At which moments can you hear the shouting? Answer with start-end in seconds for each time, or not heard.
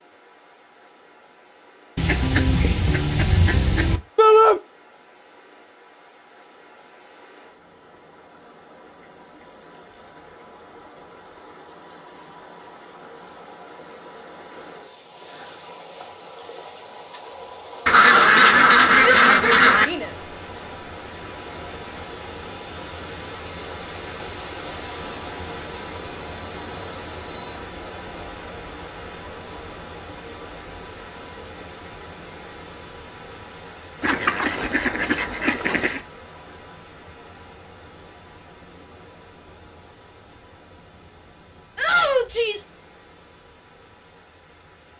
4.2-4.6, 19.0-20.1, 41.8-42.7.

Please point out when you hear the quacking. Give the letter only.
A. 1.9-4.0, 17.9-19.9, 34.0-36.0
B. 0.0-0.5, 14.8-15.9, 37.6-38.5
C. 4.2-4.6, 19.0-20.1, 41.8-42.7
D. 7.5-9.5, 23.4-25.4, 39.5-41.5
A.